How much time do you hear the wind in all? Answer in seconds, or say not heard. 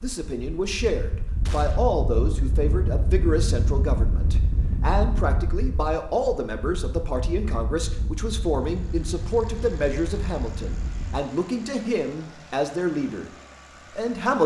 11 s.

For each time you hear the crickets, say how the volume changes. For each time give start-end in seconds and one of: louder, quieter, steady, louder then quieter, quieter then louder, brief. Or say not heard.
not heard.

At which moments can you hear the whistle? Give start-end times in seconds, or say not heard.
not heard.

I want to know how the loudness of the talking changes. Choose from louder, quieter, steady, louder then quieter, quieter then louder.
steady.